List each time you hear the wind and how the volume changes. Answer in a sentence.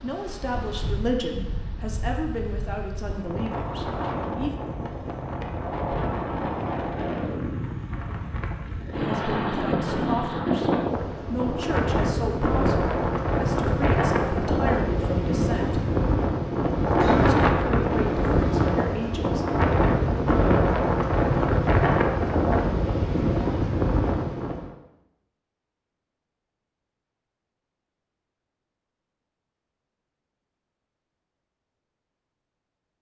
You can hear the wind from 0.0 to 24.7 s, getting louder.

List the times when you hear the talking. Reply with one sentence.
The talking can be heard from 0.0 to 4.6 s, from 8.9 to 15.8 s and from 17.1 to 19.4 s.